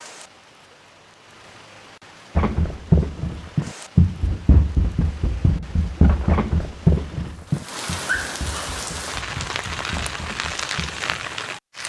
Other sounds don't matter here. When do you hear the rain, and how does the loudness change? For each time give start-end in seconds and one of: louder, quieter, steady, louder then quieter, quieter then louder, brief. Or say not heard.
0.0-11.8 louder.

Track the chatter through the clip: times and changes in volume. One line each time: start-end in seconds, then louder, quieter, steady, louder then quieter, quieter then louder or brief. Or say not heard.
not heard.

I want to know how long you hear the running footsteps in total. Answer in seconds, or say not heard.
9 s.